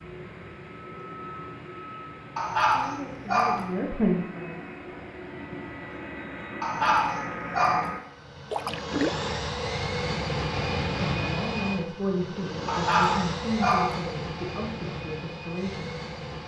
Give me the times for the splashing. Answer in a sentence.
The splashing can be heard from 8.5 to 9.3 s.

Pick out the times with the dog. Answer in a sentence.
You can hear the dog from 2.4 to 3.6 s, from 6.6 to 7.9 s and from 12.7 to 14.0 s.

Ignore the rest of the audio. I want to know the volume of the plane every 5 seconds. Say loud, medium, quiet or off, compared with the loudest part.
medium, loud, loud, medium.